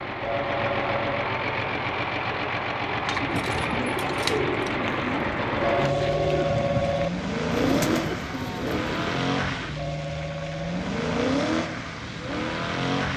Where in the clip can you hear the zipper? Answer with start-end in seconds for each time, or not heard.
not heard.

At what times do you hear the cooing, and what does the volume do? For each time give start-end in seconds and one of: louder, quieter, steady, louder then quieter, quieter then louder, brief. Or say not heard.
2.8-9.1 steady.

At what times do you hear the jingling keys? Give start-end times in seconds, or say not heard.
3.0-4.8.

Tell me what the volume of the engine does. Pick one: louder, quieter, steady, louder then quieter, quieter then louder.
steady.